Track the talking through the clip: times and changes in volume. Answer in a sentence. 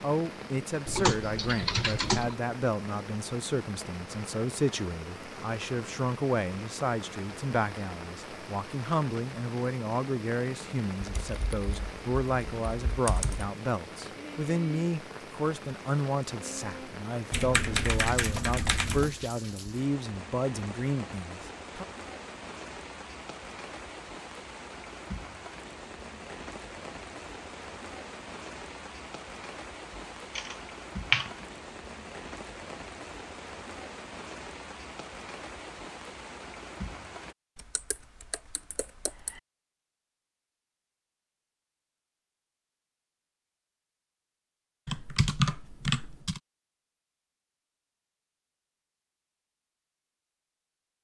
You can hear the talking from 0.0 to 21.9 s, at a steady volume.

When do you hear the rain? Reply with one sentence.
The rain can be heard from 0.0 to 37.4 s.